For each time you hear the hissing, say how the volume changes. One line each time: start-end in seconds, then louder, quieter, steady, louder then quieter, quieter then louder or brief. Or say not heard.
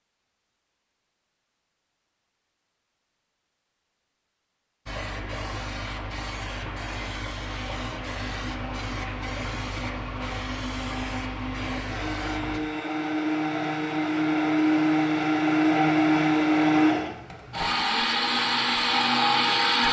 4.8-12.6 steady.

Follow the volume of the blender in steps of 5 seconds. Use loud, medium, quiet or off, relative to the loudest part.
off, quiet, medium, loud.